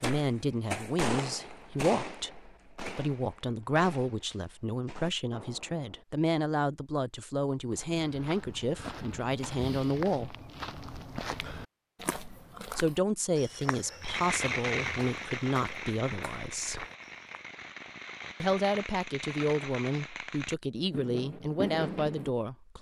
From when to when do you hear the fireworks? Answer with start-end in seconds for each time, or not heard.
0.0-6.0, 14.0-22.3.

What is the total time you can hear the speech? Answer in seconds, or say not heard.
19 s.